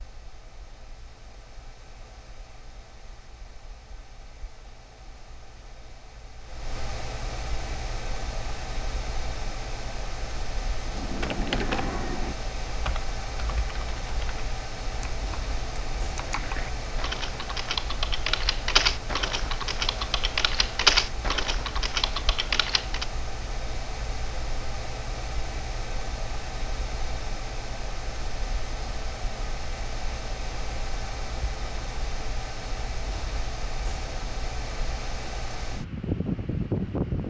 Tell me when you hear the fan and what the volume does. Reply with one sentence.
You can hear the fan from 0.0 to 37.2 s, getting louder.